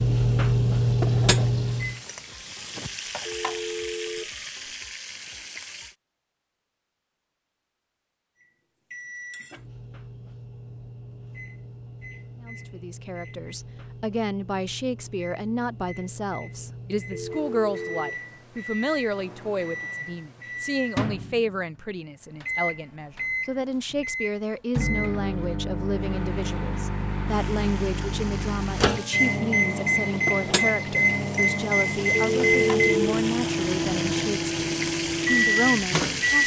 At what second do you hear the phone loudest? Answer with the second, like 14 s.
33 s.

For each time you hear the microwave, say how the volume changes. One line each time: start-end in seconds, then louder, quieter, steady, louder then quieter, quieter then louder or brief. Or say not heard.
0.0-2.0 brief
8.4-36.4 louder.